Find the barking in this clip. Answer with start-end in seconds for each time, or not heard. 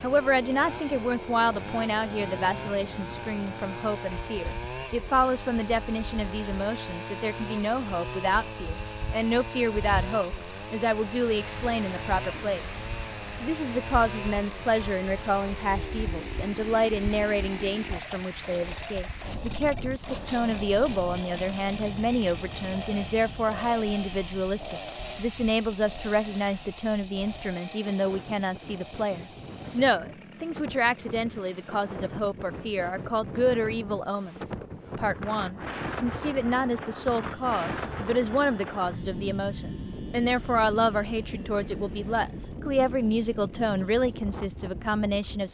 not heard.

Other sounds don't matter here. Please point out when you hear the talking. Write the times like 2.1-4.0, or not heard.
0.0-12.8, 13.4-45.4.